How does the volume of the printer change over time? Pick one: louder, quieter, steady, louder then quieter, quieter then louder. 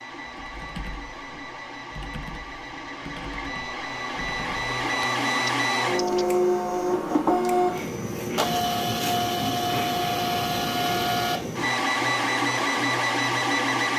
louder.